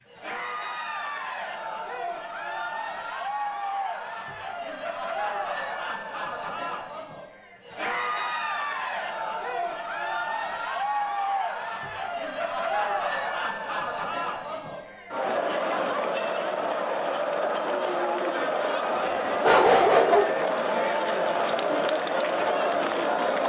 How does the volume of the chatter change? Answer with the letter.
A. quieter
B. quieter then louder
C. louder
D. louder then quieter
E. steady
C.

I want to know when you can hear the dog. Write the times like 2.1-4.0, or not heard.
18.9-20.4.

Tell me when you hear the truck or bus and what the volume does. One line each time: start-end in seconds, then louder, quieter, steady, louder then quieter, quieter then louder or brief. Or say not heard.
not heard.